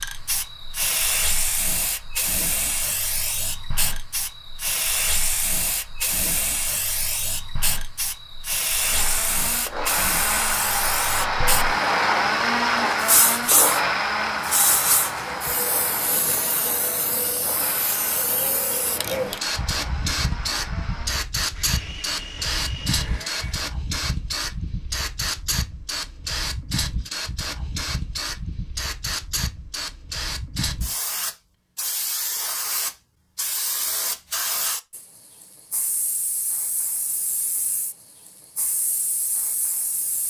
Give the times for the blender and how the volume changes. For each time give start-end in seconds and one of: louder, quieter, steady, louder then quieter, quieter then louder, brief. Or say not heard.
8.8-23.7 quieter.